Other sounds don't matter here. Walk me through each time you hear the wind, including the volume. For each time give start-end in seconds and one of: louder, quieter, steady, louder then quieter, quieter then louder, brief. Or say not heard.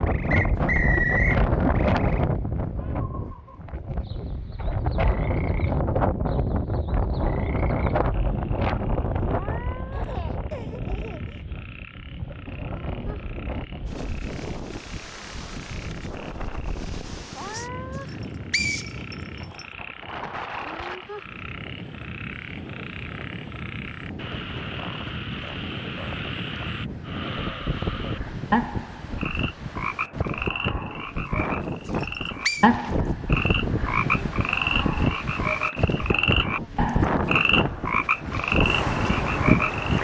0.0-39.9 quieter then louder.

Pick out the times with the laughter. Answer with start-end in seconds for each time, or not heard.
9.9-11.4.